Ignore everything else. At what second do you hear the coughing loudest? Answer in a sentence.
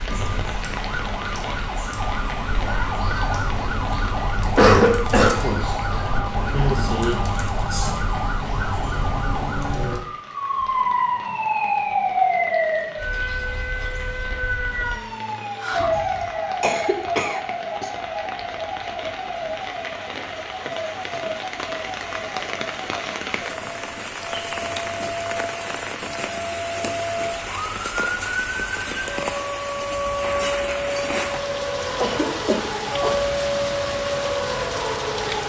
The volume of the coughing peaks at 5 seconds.